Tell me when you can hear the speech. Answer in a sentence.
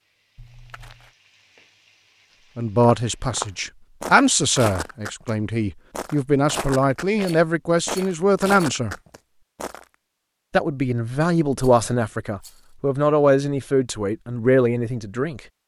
The speech can be heard from 2.5 to 8.9 s and from 10.5 to 15.4 s.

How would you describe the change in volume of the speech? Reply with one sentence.
The volume of the speech stays about the same.